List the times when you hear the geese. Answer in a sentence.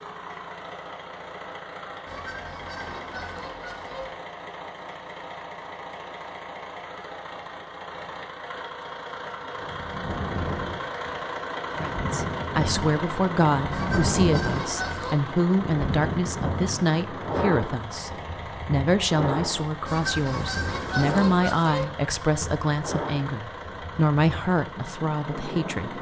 You can hear the geese from 2.0 to 4.0 s, from 13.7 to 15.2 s and from 19.9 to 21.9 s.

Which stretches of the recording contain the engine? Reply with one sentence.
The engine can be heard from 0.0 to 25.9 s.